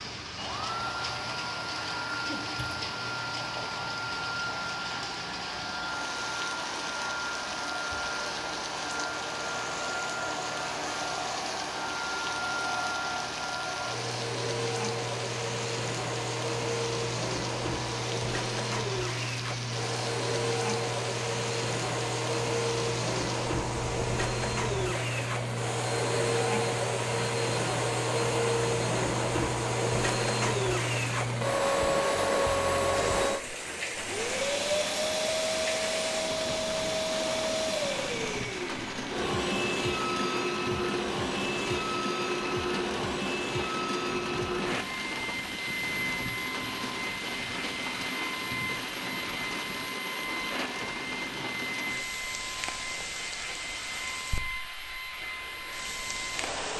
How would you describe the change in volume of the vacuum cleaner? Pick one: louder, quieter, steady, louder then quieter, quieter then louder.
louder then quieter.